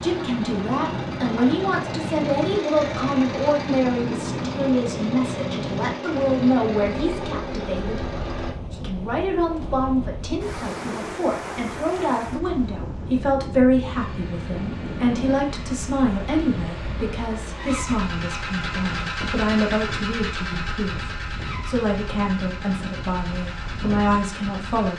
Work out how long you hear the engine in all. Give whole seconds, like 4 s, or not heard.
20 s.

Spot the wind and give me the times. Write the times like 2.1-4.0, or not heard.
0.0-24.9.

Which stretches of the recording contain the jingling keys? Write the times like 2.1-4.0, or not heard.
not heard.